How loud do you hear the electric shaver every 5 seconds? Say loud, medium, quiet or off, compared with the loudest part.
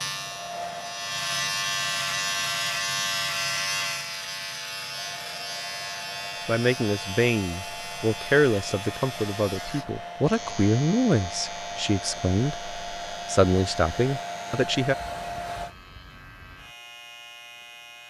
loud, medium, quiet, quiet.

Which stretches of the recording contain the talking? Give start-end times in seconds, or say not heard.
6.5-14.9.